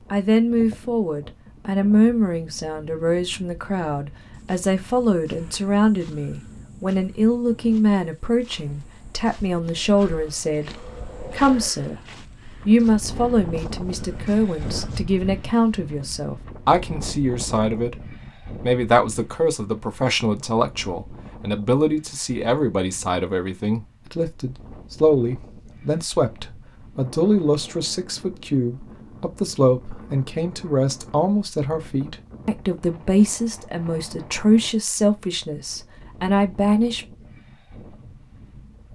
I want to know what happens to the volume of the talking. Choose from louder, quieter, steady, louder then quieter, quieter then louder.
steady.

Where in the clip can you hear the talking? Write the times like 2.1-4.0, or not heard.
0.1-12.0, 12.7-17.9, 18.6-37.0.